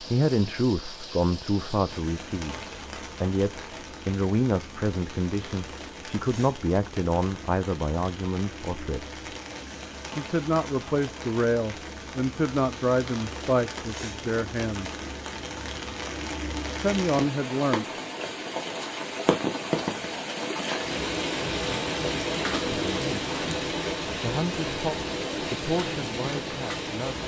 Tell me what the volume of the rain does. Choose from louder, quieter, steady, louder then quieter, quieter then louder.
louder.